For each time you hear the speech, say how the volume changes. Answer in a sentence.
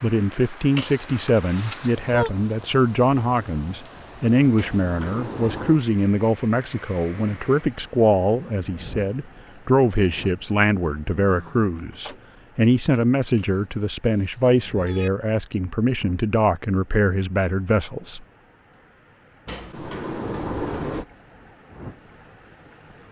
You can hear the speech from 0.0 to 18.2 s, at a steady volume.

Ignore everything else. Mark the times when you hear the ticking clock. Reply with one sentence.
You can't hear the ticking clock here.